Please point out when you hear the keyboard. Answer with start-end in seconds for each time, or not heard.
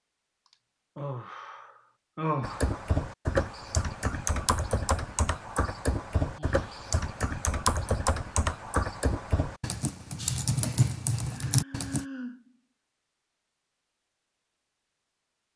2.4-12.1.